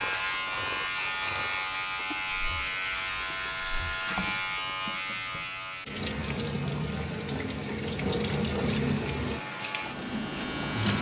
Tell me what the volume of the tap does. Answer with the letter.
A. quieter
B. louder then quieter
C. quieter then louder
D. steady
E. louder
E.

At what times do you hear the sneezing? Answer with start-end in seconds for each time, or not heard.
not heard.